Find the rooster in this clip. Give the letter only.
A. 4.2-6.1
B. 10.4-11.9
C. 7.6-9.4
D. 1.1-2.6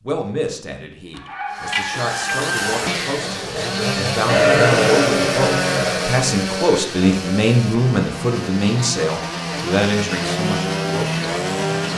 D.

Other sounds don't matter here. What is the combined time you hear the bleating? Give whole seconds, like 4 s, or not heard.
2 s.